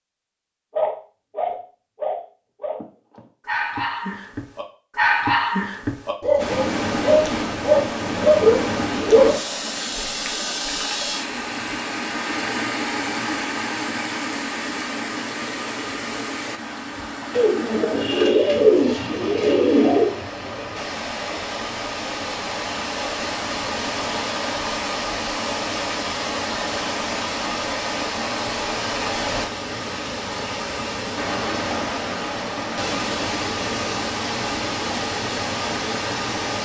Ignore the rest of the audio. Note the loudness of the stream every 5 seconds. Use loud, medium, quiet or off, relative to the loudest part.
off, loud, loud, medium, loud, loud, loud, loud.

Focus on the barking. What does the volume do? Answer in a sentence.
The loudness of the barking goes up.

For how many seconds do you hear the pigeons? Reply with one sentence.
You can hear the pigeons for 3 seconds altogether.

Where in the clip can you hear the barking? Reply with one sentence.
The barking can be heard from 0.7 to 9.3 s.